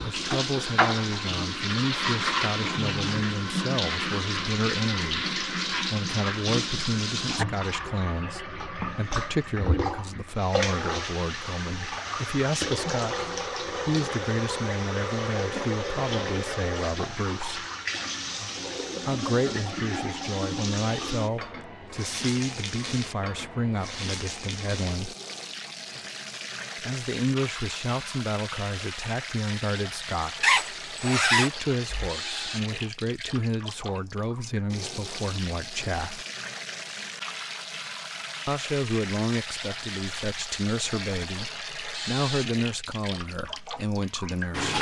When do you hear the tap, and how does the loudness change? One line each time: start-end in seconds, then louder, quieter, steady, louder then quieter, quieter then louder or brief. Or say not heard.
0.0-44.7 quieter.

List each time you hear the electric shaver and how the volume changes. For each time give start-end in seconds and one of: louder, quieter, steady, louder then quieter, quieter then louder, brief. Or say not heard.
not heard.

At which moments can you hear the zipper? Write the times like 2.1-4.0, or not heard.
30.4-32.1.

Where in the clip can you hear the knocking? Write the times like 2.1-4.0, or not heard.
not heard.